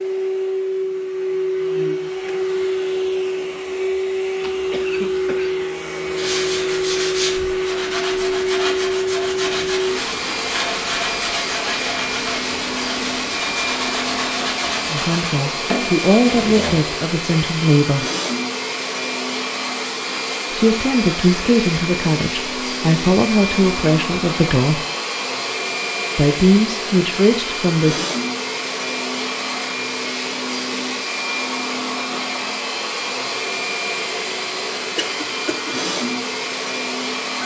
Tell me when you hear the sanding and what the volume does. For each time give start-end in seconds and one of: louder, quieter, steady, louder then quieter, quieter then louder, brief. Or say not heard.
6.2-16.8 steady.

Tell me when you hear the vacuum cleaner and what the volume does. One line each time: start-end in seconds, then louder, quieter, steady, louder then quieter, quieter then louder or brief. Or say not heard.
0.0-37.4 steady.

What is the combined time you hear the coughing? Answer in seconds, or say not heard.
2 s.